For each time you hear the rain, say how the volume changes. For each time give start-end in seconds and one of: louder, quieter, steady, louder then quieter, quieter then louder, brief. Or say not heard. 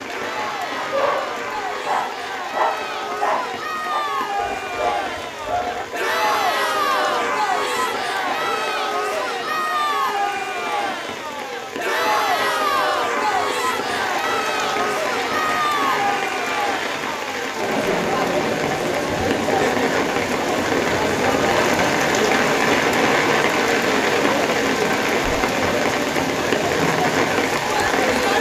0.0-28.3 louder.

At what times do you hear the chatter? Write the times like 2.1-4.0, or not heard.
0.0-28.3.